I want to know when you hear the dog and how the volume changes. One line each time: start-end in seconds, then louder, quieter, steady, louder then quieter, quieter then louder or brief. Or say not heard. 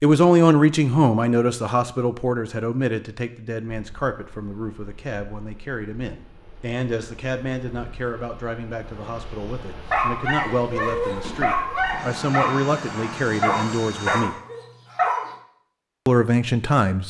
9.9-15.3 steady.